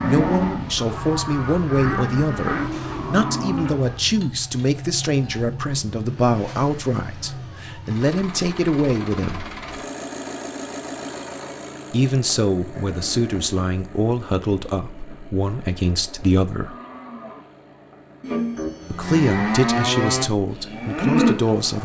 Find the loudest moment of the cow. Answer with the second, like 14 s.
21 s.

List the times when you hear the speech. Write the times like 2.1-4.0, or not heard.
0.0-9.5, 11.9-16.8, 18.9-21.8.